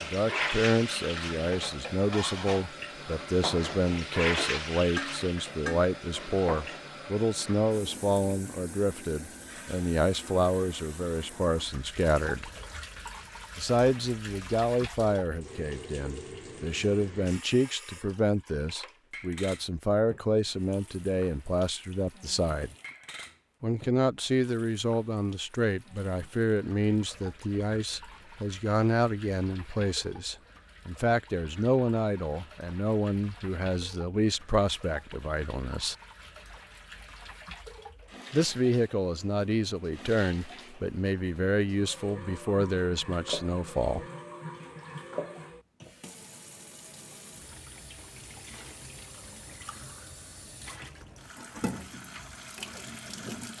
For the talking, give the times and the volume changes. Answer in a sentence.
You can hear the talking from 0.0 to 12.5 s, at a steady volume; from 13.6 to 22.8 s, at a steady volume; from 23.6 to 36.0 s, at a steady volume; and from 38.3 to 44.0 s, at a steady volume.